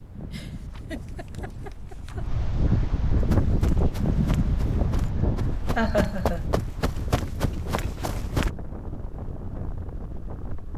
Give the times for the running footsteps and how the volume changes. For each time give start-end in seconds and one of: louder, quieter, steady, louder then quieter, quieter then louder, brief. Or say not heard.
3.1-8.5 louder.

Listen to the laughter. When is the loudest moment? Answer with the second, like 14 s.
6 s.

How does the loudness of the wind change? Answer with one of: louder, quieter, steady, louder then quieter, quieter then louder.
louder then quieter.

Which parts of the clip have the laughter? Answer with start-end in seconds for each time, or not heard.
0.3-2.2, 5.8-6.5.